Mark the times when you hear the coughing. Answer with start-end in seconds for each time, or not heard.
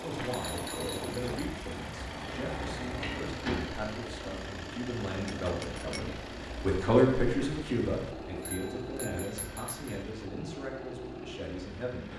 not heard.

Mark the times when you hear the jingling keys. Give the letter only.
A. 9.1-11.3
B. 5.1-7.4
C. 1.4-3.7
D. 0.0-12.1
C.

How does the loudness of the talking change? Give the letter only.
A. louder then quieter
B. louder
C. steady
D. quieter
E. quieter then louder
A.